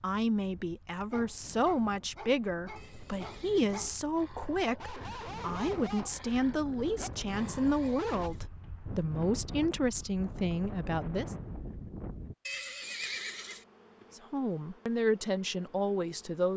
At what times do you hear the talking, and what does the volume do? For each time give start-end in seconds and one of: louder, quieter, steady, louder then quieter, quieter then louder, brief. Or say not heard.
0.0-11.3 steady
14.2-16.5 brief.